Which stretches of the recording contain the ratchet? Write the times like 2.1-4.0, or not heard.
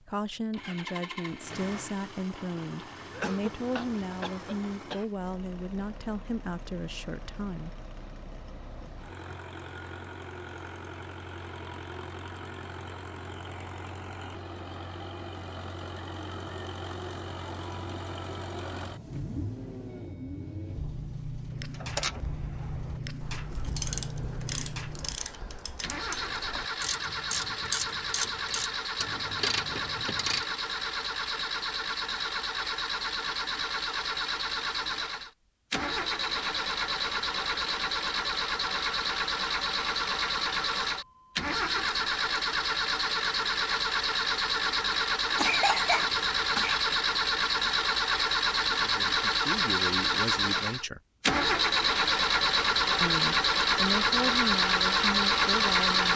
21.7-30.4.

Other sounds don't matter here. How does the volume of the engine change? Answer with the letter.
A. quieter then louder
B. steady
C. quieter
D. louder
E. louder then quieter
D.